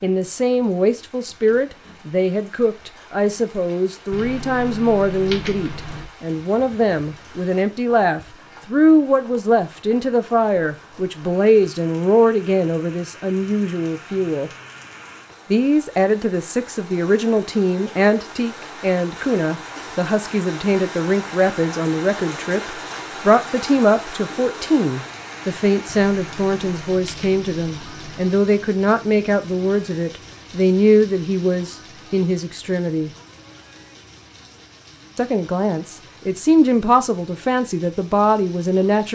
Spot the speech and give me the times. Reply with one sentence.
The speech can be heard from 0.0 to 14.5 s, from 15.5 to 33.1 s and from 35.1 to 39.0 s.